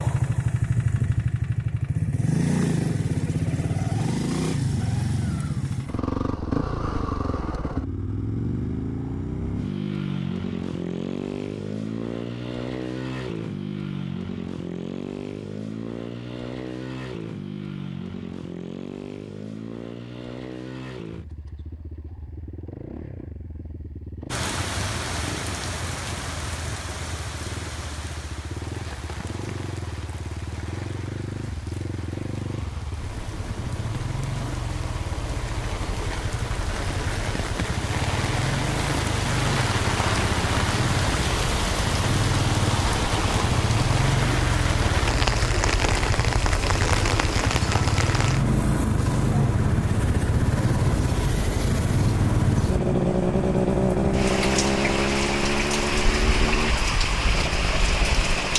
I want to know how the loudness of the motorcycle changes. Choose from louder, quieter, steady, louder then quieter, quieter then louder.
quieter then louder.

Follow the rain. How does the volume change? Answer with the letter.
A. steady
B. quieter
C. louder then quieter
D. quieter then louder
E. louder
E.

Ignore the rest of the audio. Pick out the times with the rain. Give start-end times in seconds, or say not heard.
24.3-58.5.